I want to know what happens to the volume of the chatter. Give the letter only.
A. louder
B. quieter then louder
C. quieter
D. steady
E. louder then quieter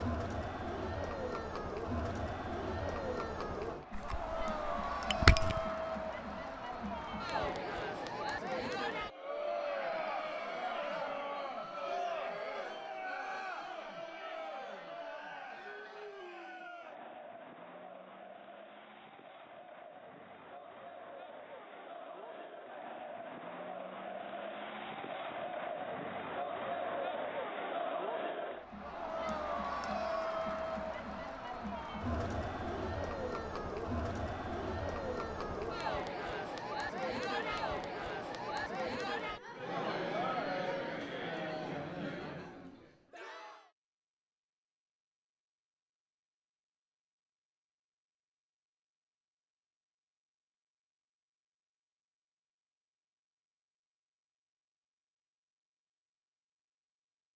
B.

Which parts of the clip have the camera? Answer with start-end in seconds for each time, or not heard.
3.9-5.7.